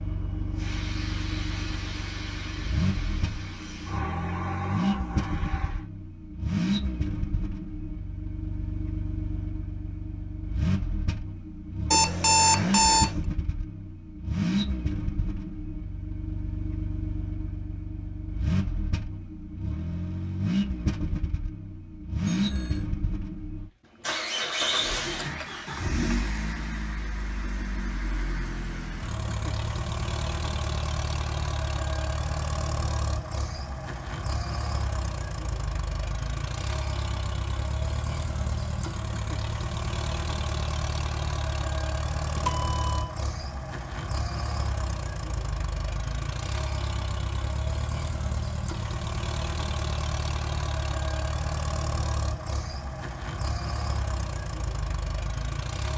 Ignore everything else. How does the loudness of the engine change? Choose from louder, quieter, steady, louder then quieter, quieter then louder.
steady.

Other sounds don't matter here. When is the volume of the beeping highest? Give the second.
12 s.